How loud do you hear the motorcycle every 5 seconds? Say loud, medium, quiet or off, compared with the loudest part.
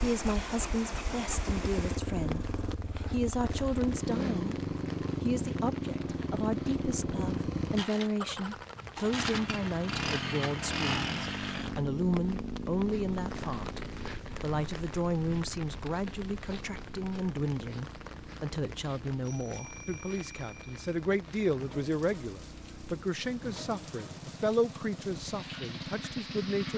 loud, loud, loud, quiet, quiet, medium.